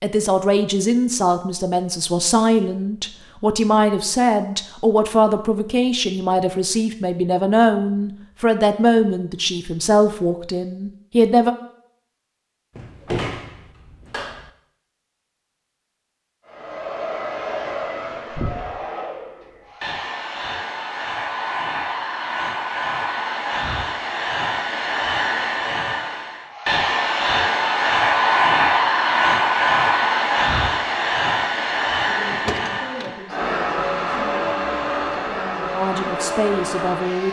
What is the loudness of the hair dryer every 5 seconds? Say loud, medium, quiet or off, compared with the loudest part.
off, off, off, medium, medium, loud, loud, medium.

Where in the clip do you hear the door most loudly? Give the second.
13 s.